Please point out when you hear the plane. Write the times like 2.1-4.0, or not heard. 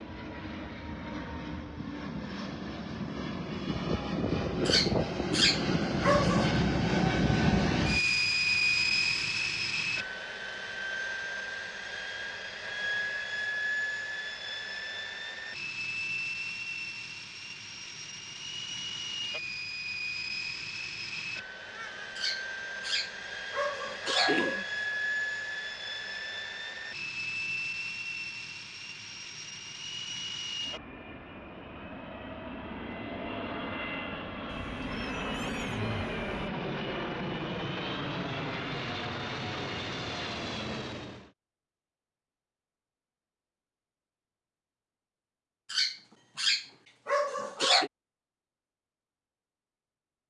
0.0-41.3.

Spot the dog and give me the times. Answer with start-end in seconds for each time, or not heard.
4.7-6.5, 22.1-24.6, 45.7-47.9.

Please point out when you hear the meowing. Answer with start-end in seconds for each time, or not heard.
21.6-22.2, 34.5-36.5.